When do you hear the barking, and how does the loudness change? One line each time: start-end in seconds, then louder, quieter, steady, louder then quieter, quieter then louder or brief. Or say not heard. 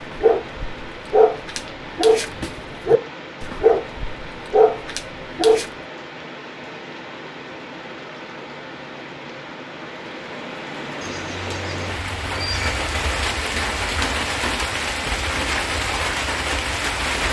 0.1-5.7 steady.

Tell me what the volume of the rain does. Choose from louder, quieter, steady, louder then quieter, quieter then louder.
louder.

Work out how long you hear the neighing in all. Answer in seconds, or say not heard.
2 s.